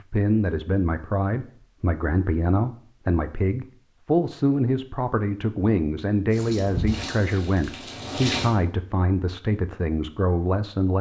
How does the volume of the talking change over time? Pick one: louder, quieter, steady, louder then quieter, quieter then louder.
steady.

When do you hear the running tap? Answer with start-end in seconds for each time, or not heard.
6.3-8.5.